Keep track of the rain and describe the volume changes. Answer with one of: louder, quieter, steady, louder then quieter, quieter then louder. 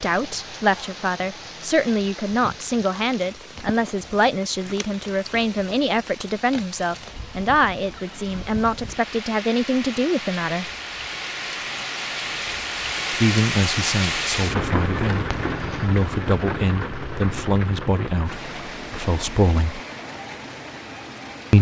louder then quieter.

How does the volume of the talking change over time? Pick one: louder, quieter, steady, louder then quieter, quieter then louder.
steady.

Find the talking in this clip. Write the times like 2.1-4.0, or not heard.
0.0-10.7, 13.1-19.8.